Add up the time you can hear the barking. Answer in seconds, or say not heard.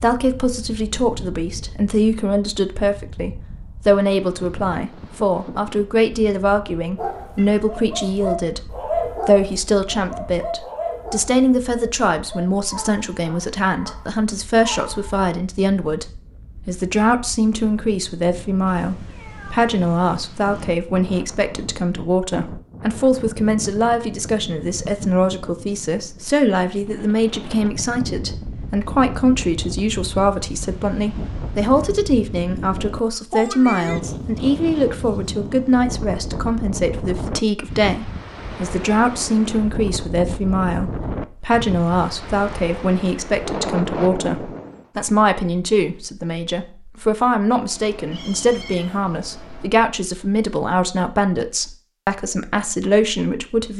8 s.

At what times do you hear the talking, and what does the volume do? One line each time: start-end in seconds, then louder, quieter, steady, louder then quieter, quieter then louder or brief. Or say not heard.
0.0-53.7 steady.